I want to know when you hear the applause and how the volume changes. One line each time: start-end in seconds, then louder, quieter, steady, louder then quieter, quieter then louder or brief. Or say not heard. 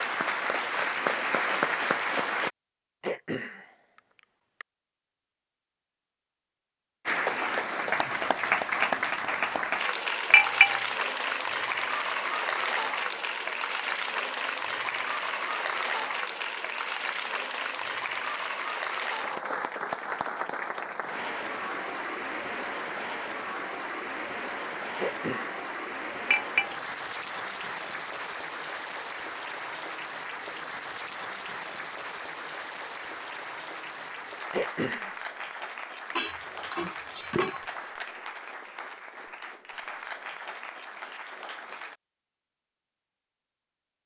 0.0-2.5 brief
7.0-42.0 quieter.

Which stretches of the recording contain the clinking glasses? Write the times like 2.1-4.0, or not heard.
10.3-10.8, 26.3-26.8, 36.1-37.8.